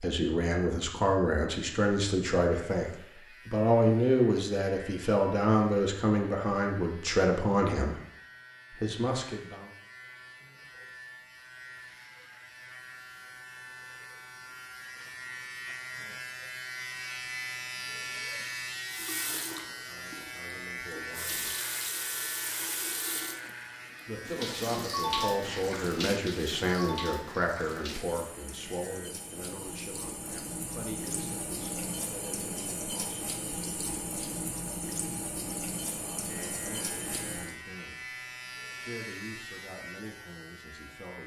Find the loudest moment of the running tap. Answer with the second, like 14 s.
25 s.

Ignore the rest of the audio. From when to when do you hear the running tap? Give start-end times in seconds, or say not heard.
18.9-37.5.